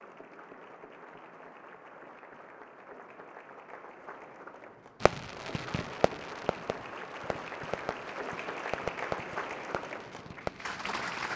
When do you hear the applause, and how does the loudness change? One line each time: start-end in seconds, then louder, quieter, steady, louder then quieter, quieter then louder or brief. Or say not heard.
0.0-11.3 louder.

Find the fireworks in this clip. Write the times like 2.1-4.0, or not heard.
5.0-10.7.